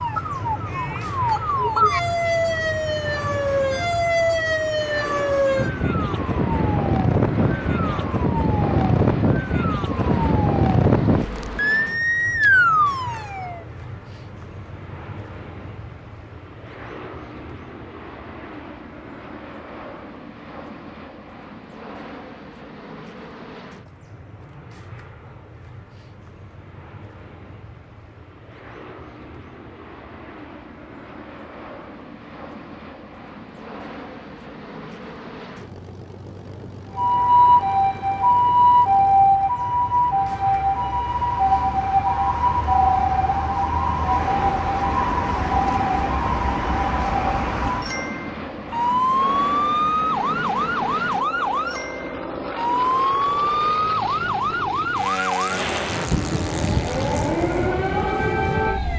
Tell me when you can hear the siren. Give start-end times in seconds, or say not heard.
0.0-13.6, 37.0-58.9.